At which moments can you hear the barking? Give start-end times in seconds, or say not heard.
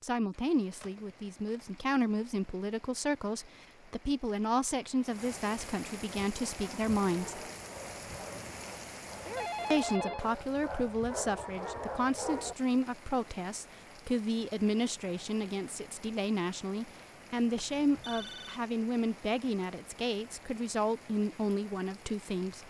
6.2-12.6.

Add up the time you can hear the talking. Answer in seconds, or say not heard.
20 s.